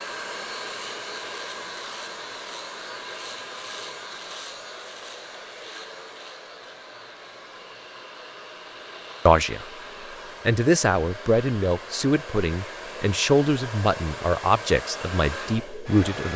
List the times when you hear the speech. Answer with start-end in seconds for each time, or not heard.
9.2-9.7, 10.4-16.3.